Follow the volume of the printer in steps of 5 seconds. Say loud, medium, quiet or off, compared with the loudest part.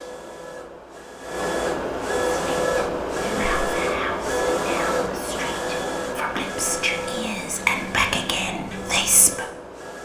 loud, medium.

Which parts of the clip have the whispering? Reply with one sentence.
The whispering can be heard from 2.4 to 9.4 s.